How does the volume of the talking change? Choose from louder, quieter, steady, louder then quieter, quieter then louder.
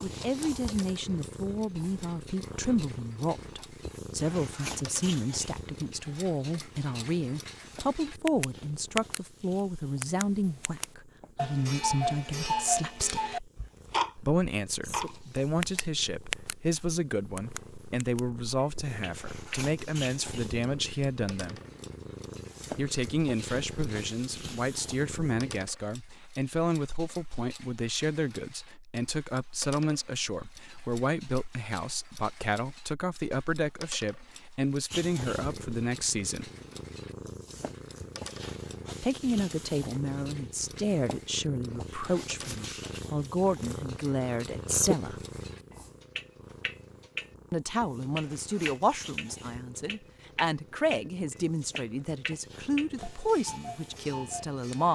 steady.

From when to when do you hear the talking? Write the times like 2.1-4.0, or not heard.
0.0-13.5, 14.2-21.6, 22.7-36.5, 39.0-45.2, 47.5-54.9.